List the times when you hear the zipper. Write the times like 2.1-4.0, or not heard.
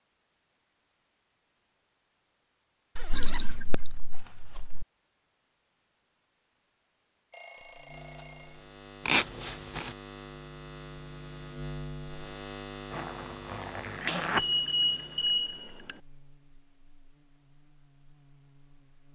3.0-4.8, 9.1-9.9, 12.9-14.4.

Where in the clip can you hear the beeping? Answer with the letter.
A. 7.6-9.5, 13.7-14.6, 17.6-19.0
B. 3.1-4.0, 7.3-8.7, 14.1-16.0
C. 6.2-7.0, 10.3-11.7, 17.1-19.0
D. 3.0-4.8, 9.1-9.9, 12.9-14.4
B.